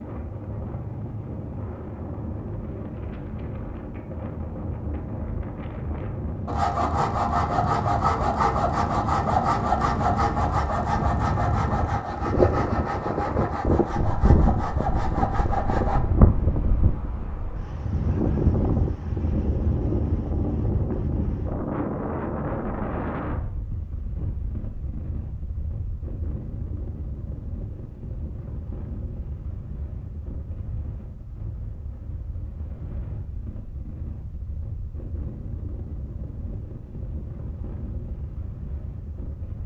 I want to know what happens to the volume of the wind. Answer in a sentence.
The volume of the wind goes up, then down.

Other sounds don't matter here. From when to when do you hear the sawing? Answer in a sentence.
The sawing can be heard from 6.5 to 16.0 s.